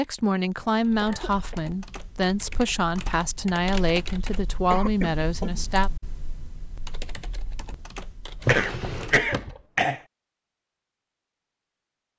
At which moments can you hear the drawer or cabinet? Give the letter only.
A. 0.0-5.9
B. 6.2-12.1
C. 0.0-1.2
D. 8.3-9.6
D.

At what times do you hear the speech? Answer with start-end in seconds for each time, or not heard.
0.0-5.9.